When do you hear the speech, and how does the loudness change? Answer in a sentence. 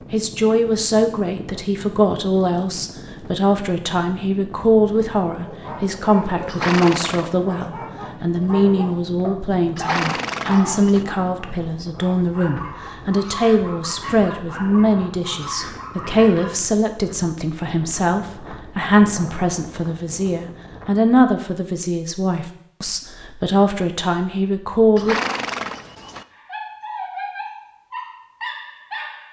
You can hear the speech from 0.1 to 25.1 s, at a steady volume.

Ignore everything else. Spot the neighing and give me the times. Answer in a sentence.
The neighing can be heard from 6.5 to 7.3 s, from 9.8 to 11.1 s and from 24.9 to 26.2 s.